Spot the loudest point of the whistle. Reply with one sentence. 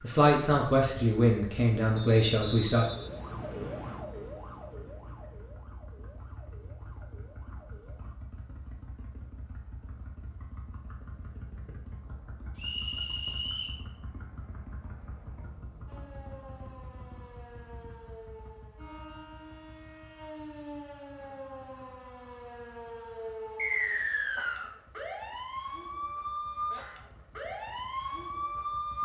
The volume of the whistle peaks at 24 seconds.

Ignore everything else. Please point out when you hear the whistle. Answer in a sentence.
You can hear the whistle from 1.9 to 4.0 s, from 12.6 to 13.8 s and from 23.6 to 24.7 s.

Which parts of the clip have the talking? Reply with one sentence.
You can hear the talking from 0.0 to 2.9 s.